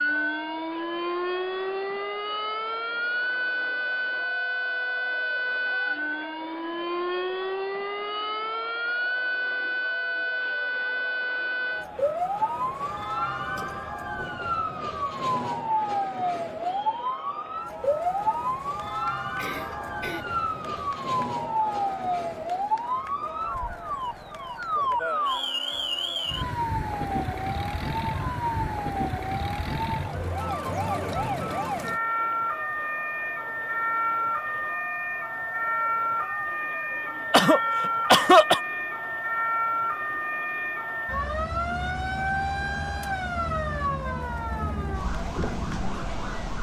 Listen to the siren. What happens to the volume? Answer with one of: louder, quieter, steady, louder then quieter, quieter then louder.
steady.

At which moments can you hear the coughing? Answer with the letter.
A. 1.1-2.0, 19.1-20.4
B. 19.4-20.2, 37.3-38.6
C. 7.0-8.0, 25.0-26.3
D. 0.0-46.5
B.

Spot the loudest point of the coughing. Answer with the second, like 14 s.
38 s.